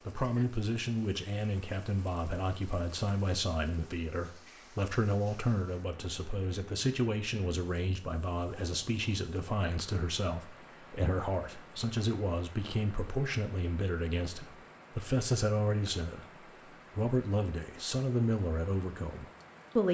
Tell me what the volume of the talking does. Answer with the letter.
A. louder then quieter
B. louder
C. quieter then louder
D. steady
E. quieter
D.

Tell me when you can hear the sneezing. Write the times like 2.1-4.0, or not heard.
not heard.